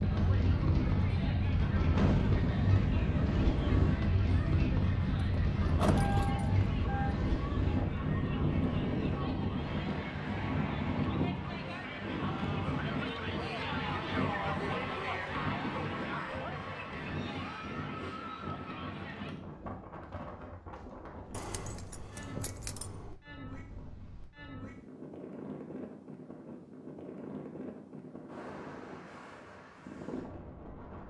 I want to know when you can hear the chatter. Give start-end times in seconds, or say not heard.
0.0-19.4.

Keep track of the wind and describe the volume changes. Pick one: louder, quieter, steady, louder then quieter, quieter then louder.
quieter.